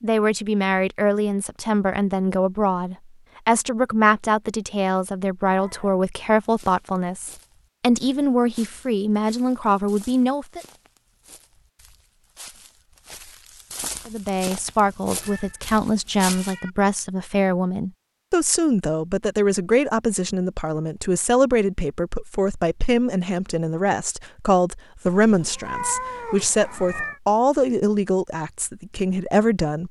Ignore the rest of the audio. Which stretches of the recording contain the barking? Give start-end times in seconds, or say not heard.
not heard.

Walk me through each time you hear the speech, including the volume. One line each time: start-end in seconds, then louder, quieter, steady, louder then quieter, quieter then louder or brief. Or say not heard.
0.0-10.6 steady
14.1-29.8 steady.